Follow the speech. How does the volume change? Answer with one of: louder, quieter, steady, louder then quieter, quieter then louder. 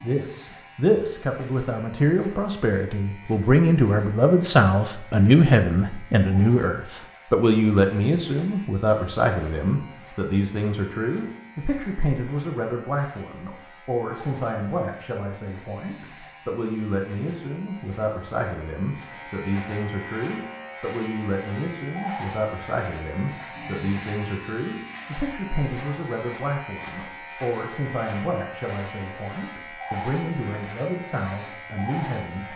quieter.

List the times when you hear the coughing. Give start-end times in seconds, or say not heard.
not heard.